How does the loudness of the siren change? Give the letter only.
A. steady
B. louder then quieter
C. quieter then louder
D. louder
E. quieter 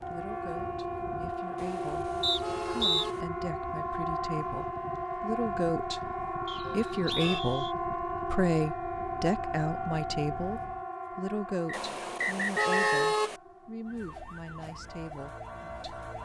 E.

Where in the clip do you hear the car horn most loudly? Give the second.
13 s.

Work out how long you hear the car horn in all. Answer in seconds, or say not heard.
4 s.